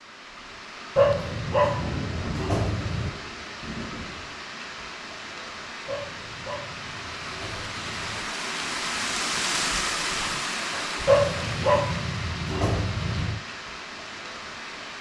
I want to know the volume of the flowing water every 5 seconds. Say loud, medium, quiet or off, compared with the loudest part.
medium, loud, loud.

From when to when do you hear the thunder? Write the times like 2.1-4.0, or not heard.
1.8-4.5.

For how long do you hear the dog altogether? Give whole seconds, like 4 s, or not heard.
7 s.